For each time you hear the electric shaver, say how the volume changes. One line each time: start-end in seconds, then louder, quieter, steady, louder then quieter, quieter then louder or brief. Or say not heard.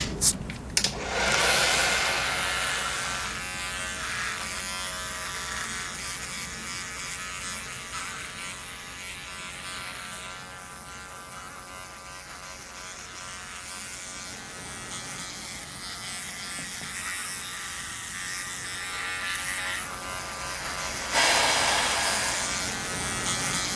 0.0-23.7 quieter then louder.